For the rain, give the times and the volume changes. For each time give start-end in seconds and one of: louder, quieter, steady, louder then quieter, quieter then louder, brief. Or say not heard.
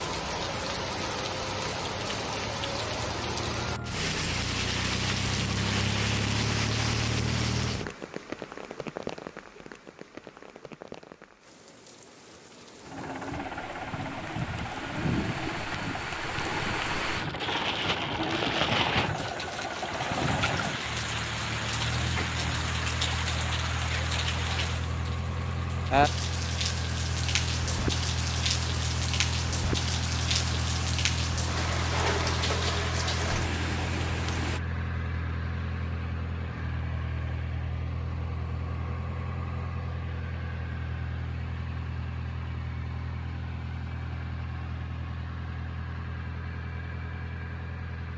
0.0-34.6 quieter then louder.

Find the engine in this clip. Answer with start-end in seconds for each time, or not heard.
0.0-8.0, 12.8-48.1.